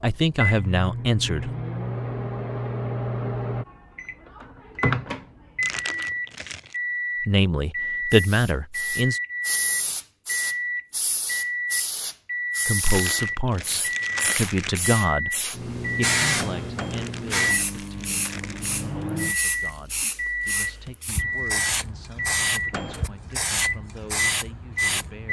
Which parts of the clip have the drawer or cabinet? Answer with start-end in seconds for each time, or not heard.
not heard.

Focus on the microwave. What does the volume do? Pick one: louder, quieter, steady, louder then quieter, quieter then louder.
steady.